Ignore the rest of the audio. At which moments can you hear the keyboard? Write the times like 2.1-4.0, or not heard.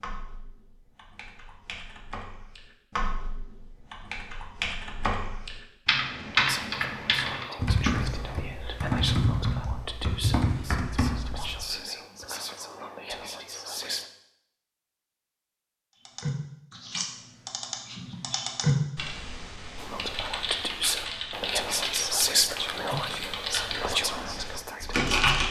0.0-11.8, 16.1-25.4.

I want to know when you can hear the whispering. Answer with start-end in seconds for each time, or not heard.
6.3-14.1, 19.8-25.1.